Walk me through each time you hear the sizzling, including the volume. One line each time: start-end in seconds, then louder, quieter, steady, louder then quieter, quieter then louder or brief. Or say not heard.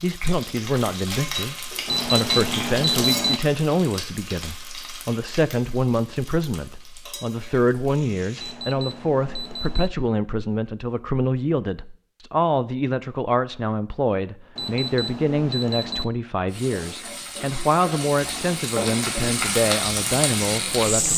0.0-8.6 quieter
16.4-21.1 louder.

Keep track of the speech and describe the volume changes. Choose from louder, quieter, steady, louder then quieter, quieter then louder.
steady.